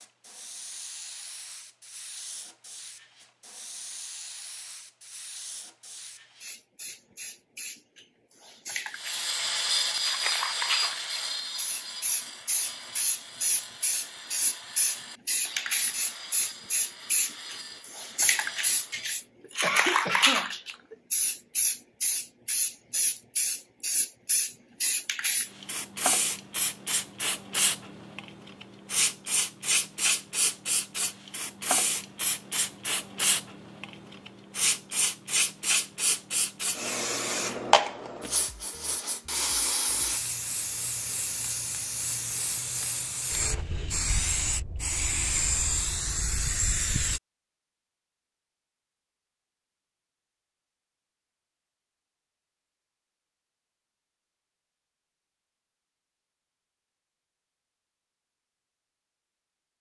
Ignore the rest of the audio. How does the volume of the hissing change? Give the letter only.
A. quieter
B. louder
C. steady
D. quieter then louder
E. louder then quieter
B.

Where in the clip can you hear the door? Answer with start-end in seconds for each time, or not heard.
not heard.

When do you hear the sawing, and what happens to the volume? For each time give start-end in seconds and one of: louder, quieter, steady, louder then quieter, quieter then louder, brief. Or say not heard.
8.9-19.2 quieter.